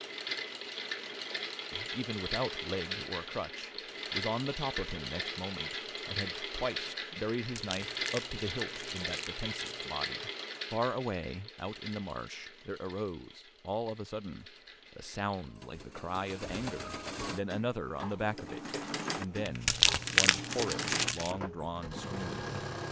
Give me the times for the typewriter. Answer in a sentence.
You can't hear the typewriter here.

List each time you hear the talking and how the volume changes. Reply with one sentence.
The talking can be heard from 1.7 to 22.6 s, at a steady volume.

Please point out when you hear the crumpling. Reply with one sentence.
The crumpling can be heard from 7.3 to 9.8 s and from 19.4 to 21.4 s.